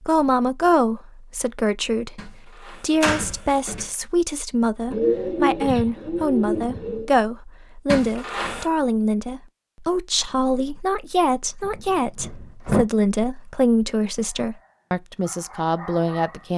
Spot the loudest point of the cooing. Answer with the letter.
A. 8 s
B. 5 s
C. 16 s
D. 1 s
B.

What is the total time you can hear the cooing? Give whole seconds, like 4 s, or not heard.
2 s.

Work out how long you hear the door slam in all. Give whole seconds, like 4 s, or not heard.
4 s.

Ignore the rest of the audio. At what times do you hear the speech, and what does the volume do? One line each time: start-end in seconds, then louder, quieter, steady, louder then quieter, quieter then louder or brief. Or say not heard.
0.0-16.5 steady.